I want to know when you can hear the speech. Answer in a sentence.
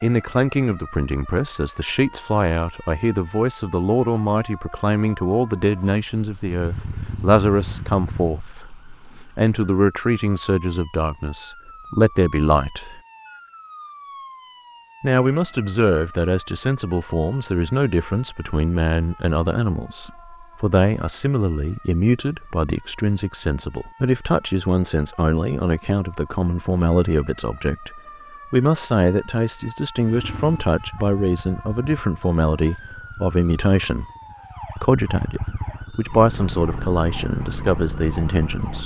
The speech can be heard from 0.0 to 8.7 s, from 9.3 to 13.0 s, from 15.0 to 34.0 s and from 34.8 to 38.8 s.